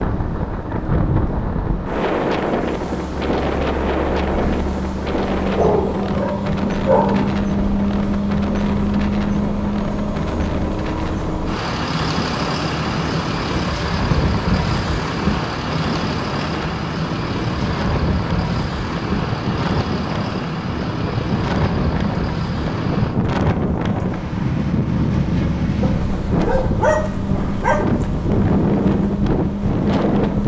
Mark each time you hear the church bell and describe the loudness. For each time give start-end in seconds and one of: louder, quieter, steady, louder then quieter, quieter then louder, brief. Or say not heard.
not heard.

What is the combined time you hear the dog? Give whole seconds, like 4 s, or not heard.
4 s.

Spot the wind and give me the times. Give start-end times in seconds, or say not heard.
0.0-30.4.